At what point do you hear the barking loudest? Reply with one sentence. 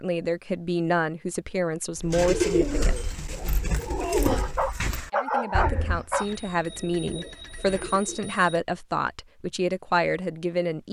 The volume of the barking peaks at 5 seconds.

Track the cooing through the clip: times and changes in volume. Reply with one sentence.
You can hear the cooing from 1.9 to 8.3 s, getting quieter.